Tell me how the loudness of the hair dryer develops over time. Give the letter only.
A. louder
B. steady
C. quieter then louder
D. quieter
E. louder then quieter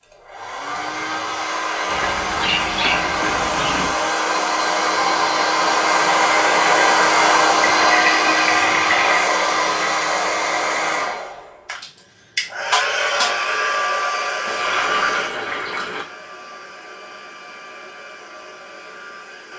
E.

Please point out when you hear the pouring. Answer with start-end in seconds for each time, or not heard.
1.9-3.9, 7.6-9.3, 14.4-16.1.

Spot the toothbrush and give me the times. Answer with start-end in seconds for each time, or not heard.
not heard.